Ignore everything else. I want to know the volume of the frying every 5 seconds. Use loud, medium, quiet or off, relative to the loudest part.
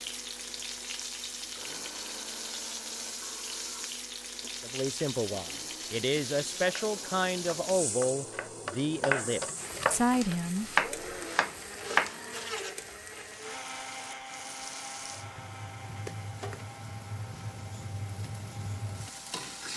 loud, loud, medium, loud.